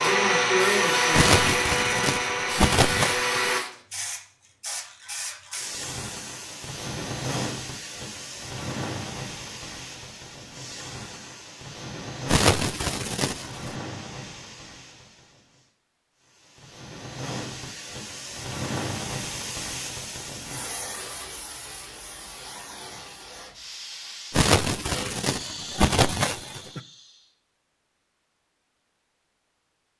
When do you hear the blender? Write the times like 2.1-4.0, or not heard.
0.0-3.6.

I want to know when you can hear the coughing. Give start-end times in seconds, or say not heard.
1.1-3.5, 12.2-13.8, 24.3-26.8.